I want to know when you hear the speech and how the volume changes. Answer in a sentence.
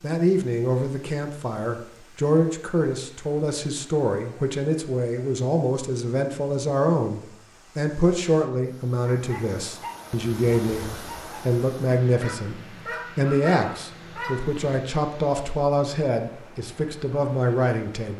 You can hear the speech from 0.0 to 18.1 s, at a steady volume.